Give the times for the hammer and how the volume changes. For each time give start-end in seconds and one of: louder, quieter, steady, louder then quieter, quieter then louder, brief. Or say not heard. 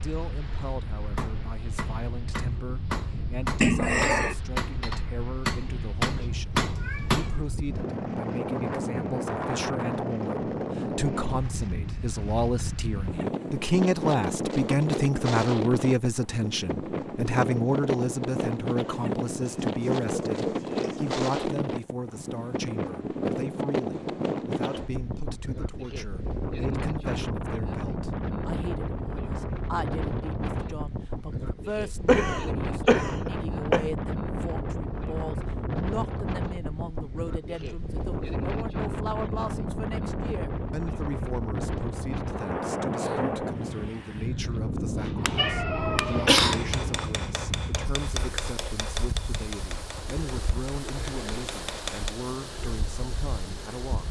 0.4-7.4 louder
45.0-52.1 quieter.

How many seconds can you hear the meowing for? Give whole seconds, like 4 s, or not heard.
5 s.